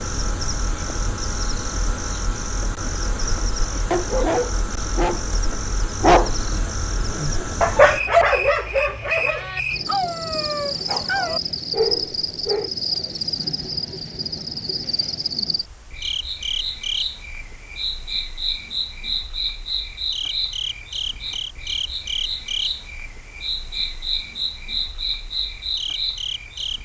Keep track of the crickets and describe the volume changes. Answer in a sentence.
The loudness of the crickets stays about the same.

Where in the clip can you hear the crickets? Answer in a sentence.
You can hear the crickets from 0.0 to 26.8 s.